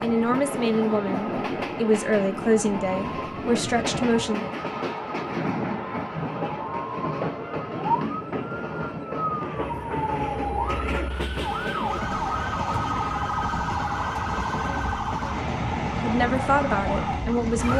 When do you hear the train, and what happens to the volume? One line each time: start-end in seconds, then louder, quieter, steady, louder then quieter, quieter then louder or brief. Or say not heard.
0.0-17.7 steady.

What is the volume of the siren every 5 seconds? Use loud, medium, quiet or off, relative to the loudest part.
medium, loud, loud, loud.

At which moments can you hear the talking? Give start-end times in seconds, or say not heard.
0.0-4.5, 16.0-17.7.